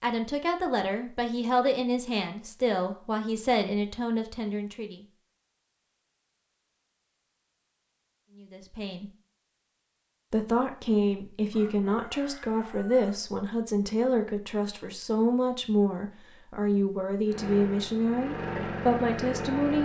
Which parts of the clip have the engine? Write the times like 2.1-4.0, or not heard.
17.2-19.7.